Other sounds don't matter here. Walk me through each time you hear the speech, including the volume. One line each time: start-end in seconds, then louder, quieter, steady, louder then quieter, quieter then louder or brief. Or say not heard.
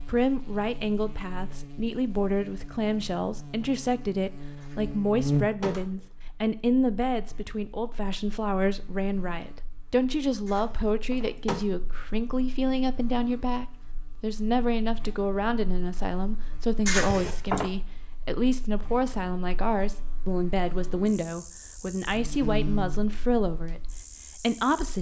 0.0-24.9 steady.